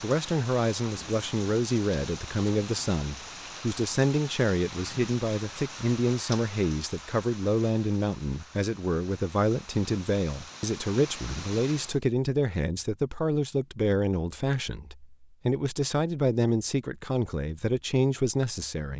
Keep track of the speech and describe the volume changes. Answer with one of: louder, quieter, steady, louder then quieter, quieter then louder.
steady.